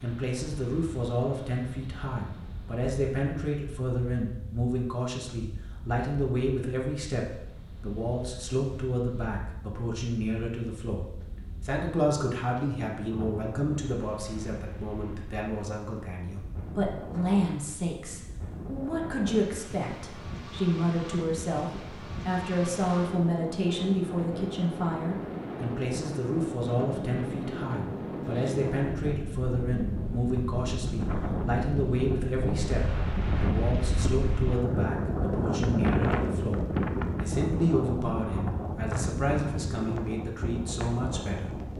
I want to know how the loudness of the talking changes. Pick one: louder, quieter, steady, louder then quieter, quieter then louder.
steady.